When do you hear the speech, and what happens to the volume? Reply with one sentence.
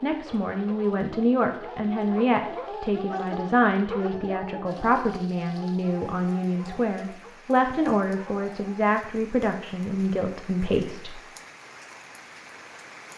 You can hear the speech from 0.0 to 11.2 s, at a steady volume.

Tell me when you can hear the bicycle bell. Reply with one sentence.
The bicycle bell can't be heard in this clip.